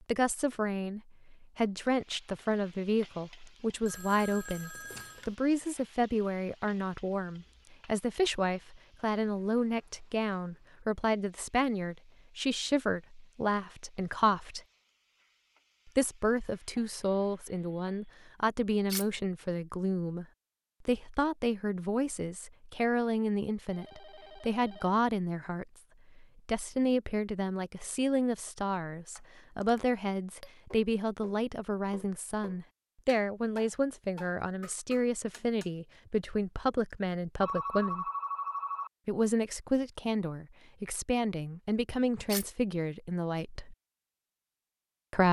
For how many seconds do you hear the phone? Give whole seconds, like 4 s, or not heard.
4 s.